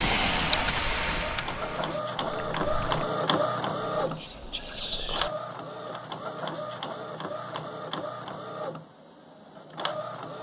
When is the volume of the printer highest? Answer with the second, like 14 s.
3 s.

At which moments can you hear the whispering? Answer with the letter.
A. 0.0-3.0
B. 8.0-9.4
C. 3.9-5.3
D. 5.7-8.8
C.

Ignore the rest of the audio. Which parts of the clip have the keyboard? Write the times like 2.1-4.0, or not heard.
0.0-3.0.